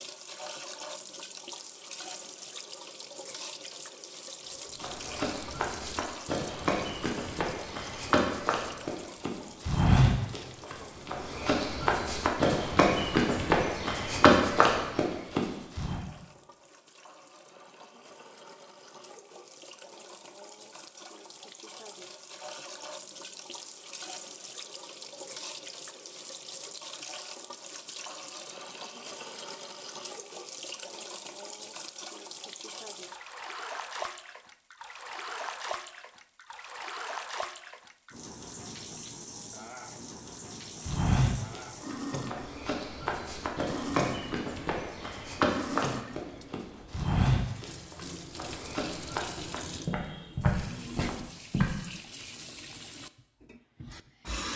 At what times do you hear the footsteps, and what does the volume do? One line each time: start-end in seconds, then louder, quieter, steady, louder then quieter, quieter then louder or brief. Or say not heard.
4.8-16.0 louder
40.5-51.7 steady.